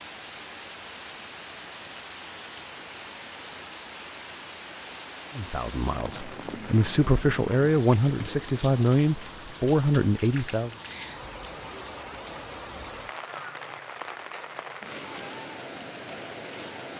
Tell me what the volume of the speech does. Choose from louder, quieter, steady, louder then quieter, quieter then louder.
louder.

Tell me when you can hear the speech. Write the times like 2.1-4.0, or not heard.
5.3-10.8.